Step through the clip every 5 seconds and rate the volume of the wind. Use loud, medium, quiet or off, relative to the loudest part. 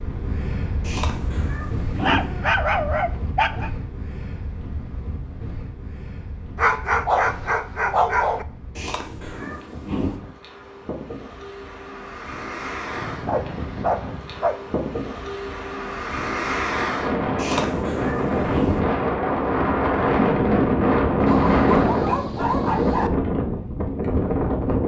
quiet, quiet, quiet, loud, loud.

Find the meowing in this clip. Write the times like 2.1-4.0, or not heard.
0.8-2.2, 8.8-10.2, 17.4-18.8.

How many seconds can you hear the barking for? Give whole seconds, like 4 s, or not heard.
7 s.